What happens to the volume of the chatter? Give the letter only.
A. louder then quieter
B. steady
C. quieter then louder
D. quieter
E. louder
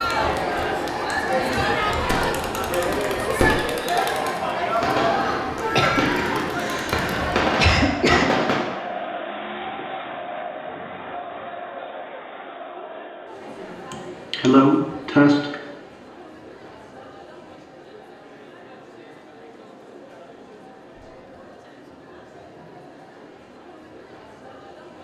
D.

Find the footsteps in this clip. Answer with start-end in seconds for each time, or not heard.
not heard.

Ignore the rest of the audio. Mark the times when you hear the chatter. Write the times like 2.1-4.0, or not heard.
0.0-24.9.